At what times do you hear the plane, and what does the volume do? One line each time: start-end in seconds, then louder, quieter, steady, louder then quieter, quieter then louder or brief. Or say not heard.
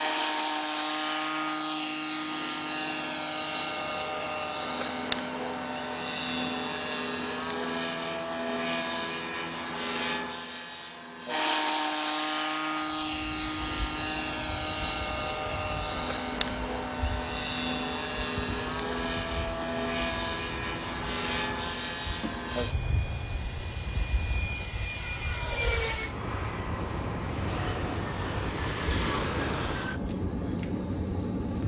0.0-31.6 steady.